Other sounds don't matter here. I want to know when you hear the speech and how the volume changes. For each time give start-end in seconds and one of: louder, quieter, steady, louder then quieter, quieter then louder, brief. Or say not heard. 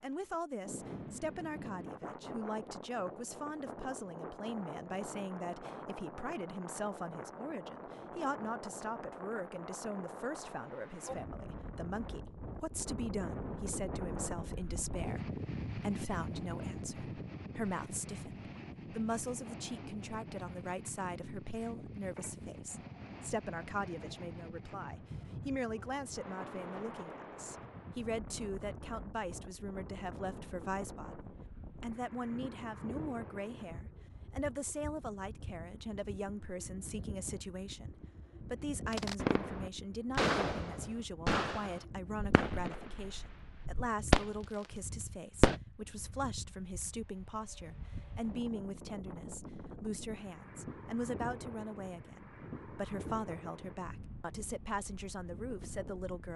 0.0-56.3 steady.